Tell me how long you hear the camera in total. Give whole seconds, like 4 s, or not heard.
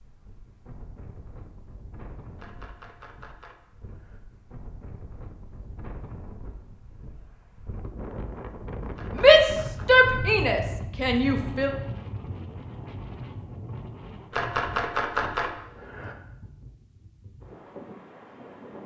5 s.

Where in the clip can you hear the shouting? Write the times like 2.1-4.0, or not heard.
9.2-11.7.